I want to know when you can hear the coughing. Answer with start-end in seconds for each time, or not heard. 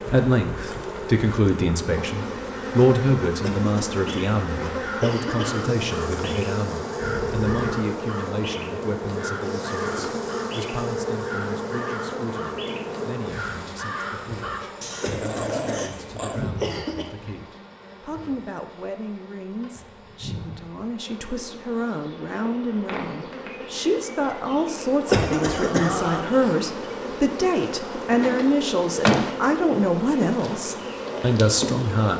3.4-5.8, 15.0-17.1, 24.9-25.9.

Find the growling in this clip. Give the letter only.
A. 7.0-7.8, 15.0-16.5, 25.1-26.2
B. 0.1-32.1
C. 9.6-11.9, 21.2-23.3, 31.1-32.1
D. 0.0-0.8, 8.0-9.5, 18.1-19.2
A.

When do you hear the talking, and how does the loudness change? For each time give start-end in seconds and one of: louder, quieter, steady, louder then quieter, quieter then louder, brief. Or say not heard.
0.1-32.1 quieter then louder.